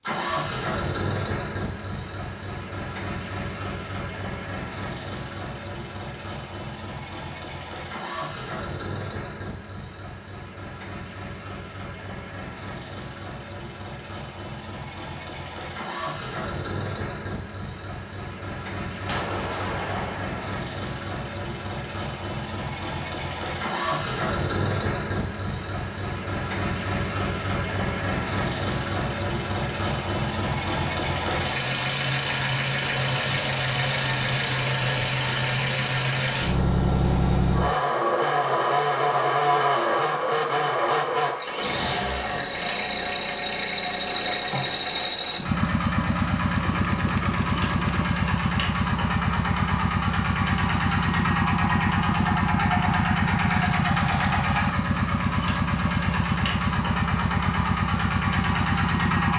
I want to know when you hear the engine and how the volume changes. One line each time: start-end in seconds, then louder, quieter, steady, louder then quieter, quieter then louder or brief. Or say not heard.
0.0-59.3 louder.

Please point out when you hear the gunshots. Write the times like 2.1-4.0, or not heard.
19.1-20.4, 46.6-48.1.